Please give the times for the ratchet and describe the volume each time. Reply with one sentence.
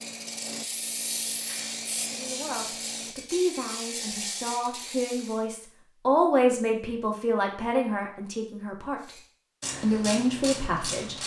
The ratchet can be heard from 0.0 to 5.5 s, at a steady volume; and briefly from 9.0 to 11.2 s.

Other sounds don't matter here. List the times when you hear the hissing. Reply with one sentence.
The hissing can be heard from 0.0 to 3.1 s.